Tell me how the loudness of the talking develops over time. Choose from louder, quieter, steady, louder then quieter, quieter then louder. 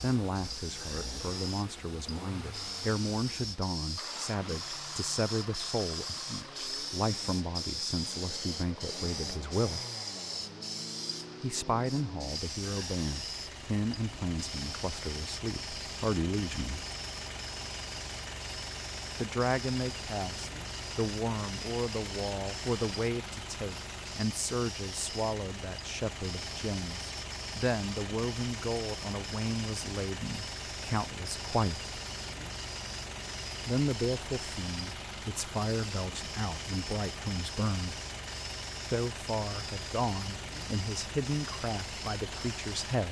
steady.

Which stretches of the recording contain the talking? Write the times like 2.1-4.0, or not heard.
0.0-9.8, 11.4-16.9, 19.1-31.9, 33.6-38.0, 38.9-43.0.